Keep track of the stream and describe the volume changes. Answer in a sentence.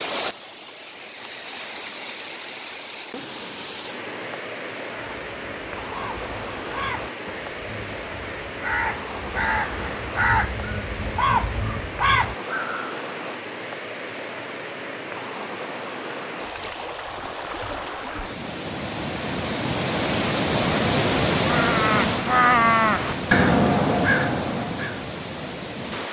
The loudness of the stream goes up.